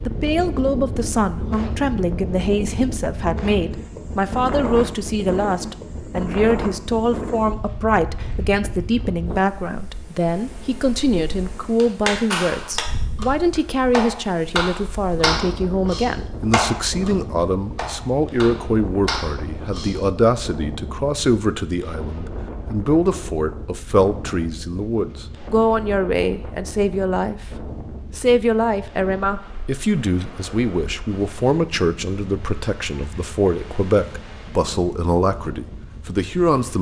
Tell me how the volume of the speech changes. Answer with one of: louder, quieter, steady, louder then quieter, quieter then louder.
steady.